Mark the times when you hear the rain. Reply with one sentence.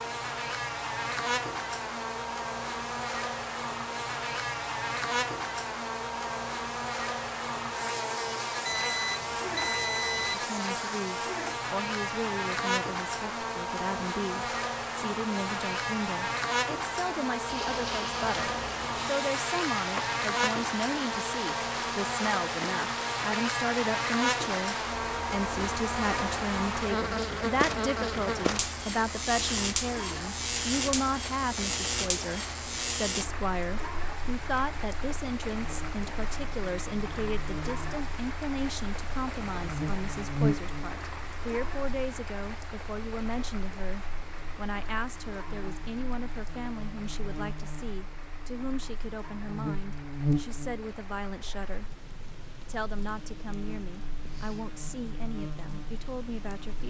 You can hear the rain from 17.4 to 56.8 s.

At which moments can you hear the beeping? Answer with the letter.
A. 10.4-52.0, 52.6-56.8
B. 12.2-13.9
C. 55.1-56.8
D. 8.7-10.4
D.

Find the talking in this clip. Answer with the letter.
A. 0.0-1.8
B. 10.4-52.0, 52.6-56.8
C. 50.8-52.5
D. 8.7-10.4
B.